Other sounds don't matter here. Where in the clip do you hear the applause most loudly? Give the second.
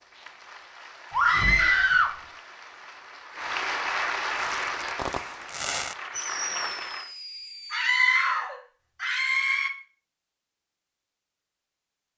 4 s.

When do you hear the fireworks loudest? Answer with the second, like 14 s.
6 s.